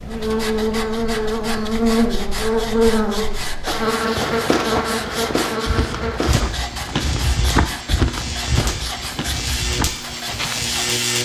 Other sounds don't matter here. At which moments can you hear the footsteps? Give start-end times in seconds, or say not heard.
3.5-10.9.